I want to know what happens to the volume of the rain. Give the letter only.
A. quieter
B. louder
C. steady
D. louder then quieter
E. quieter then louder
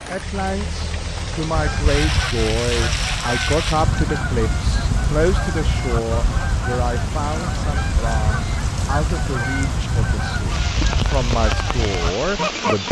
C.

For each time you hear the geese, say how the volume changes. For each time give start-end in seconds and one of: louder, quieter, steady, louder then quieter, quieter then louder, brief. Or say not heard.
1.5-12.8 steady.